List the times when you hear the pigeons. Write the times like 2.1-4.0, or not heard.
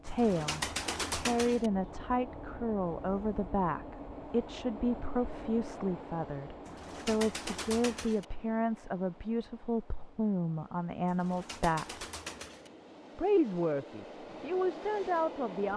0.1-1.7, 6.7-8.2, 11.1-12.7.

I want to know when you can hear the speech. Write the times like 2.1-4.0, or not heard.
0.0-12.1, 13.2-15.7.